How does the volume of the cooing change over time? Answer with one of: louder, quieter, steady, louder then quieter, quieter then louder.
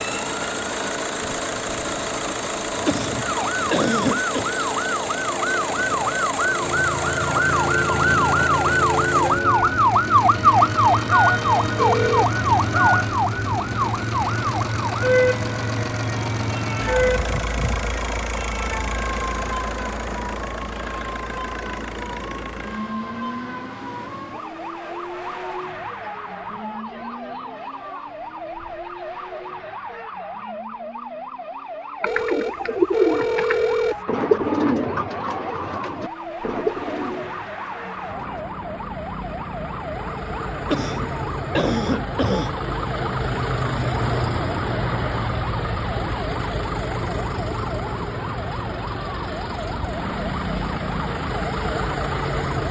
quieter.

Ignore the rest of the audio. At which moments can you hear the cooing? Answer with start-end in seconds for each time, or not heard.
32.0-38.5.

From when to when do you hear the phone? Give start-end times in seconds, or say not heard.
11.8-12.3, 32.0-34.0.